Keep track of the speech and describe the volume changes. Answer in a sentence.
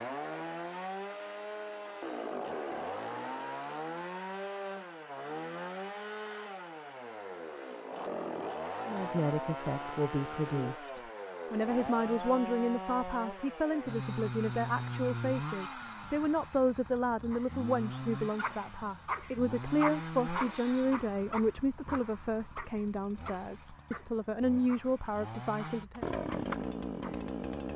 The loudness of the speech stays about the same.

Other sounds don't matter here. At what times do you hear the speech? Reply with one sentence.
The speech can be heard from 8.8 to 26.1 s.